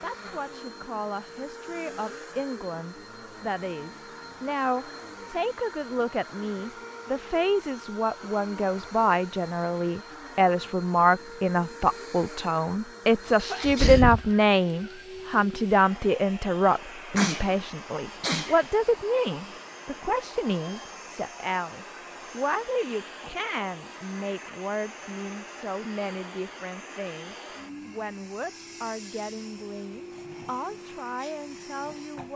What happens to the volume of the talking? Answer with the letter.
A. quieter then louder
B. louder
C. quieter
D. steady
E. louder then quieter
E.